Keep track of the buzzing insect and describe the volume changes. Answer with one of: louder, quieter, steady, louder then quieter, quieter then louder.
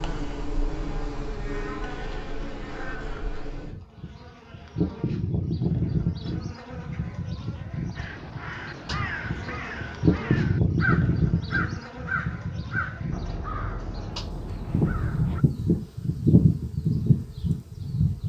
louder.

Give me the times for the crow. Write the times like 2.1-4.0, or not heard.
8.0-15.4.